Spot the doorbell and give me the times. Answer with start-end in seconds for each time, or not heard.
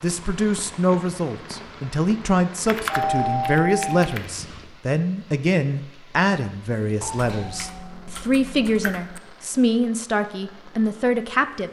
2.9-3.9, 7.0-7.7.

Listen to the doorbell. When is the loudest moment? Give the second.
3 s.